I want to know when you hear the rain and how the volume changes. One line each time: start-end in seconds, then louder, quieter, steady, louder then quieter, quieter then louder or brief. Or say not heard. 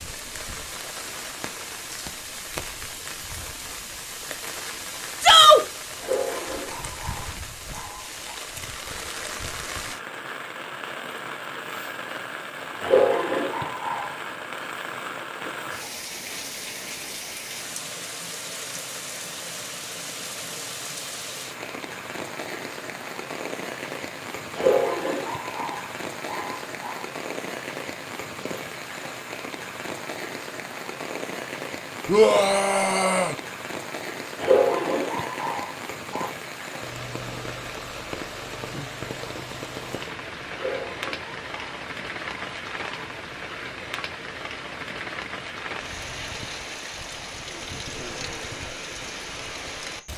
0.0-50.1 steady.